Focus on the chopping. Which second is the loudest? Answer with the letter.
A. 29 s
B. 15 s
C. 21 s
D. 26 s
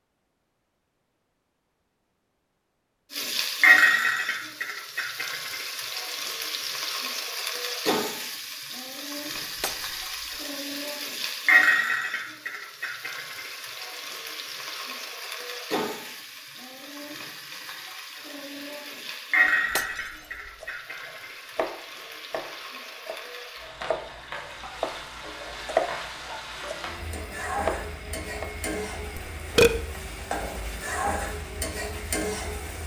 D.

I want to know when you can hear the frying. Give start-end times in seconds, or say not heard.
3.1-32.8.